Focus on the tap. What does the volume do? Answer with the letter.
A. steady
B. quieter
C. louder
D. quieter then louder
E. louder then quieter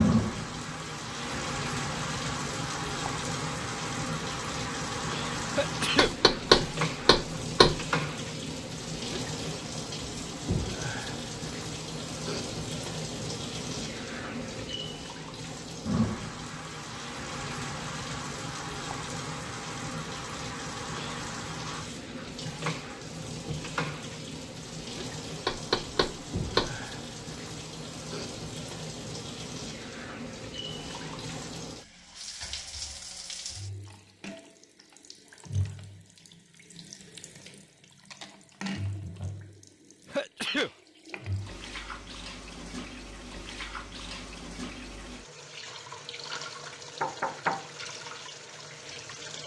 B.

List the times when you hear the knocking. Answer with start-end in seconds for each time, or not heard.
6.0-7.8, 25.4-26.8, 47.0-47.7.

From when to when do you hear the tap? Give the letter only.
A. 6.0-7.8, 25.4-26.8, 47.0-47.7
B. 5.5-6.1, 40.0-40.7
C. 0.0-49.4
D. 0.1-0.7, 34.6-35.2
C.